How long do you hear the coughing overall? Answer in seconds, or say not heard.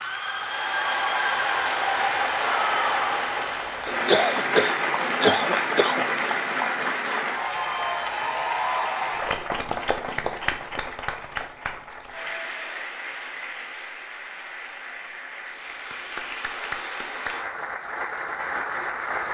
2 s.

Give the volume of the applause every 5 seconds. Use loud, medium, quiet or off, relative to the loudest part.
loud, loud, medium, medium.